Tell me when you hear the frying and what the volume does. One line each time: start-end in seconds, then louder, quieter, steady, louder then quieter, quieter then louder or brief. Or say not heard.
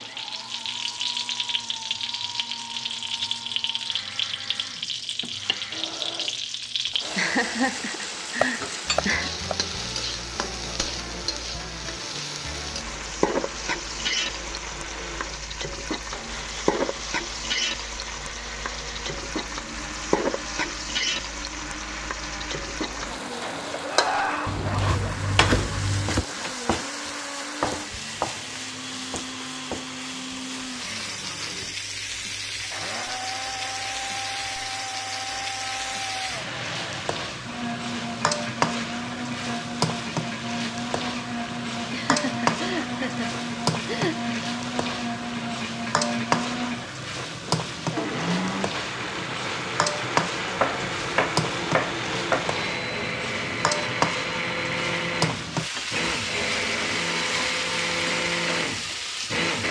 0.0-59.6 steady.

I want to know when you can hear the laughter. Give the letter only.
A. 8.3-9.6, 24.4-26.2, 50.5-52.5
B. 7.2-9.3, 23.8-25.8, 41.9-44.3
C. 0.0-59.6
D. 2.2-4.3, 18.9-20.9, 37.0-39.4
B.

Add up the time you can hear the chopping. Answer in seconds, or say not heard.
5 s.